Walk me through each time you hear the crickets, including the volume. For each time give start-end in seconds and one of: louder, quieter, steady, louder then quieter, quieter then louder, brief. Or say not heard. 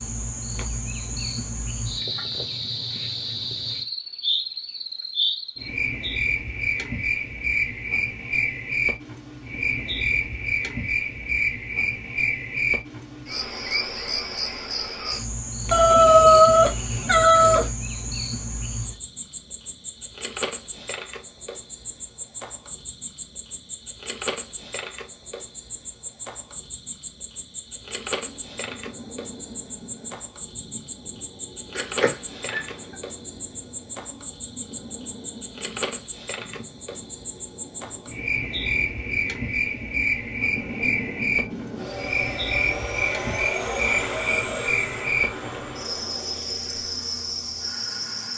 0.0-48.3 quieter then louder.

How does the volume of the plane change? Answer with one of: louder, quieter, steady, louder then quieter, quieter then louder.
louder.